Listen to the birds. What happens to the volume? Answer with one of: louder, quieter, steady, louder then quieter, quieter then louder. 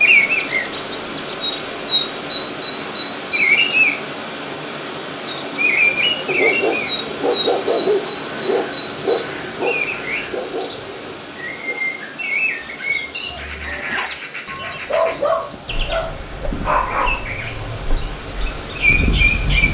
quieter then louder.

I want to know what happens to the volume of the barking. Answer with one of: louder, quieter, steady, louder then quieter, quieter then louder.
quieter then louder.